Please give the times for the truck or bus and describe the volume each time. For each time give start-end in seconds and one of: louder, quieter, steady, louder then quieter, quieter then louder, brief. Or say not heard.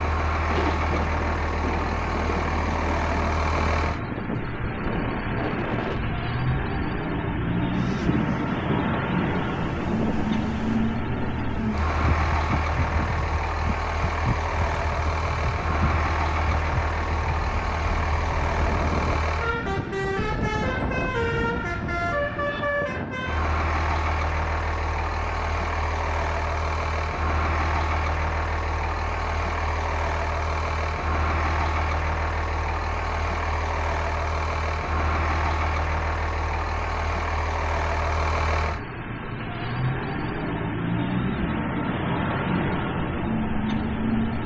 0.0-44.4 steady.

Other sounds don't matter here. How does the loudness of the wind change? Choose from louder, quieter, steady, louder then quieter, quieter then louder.
steady.